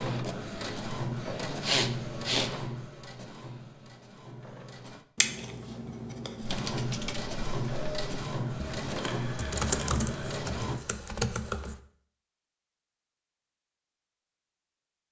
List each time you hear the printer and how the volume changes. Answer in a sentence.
The printer can be heard from 0.0 to 5.0 s, getting quieter; and from 6.5 to 10.8 s, at a steady volume.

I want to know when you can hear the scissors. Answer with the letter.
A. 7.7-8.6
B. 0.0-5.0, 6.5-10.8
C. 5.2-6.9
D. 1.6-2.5
C.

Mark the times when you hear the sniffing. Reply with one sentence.
You can hear the sniffing from 1.6 to 2.5 s.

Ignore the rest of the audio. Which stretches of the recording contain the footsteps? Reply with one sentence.
The footsteps can't be heard in this clip.